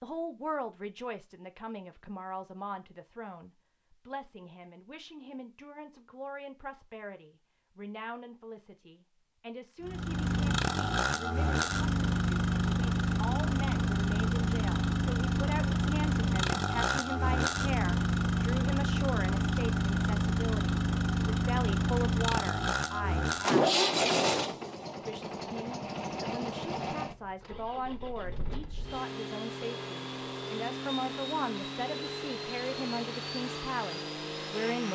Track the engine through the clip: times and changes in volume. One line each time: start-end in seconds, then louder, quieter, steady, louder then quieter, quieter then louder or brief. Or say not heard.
9.8-34.9 quieter.